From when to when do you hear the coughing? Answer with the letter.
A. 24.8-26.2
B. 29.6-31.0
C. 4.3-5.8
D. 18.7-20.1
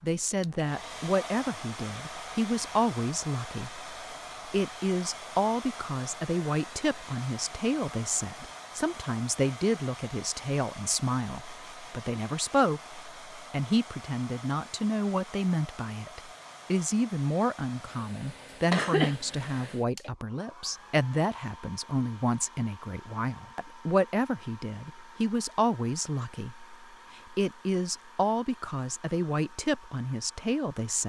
D.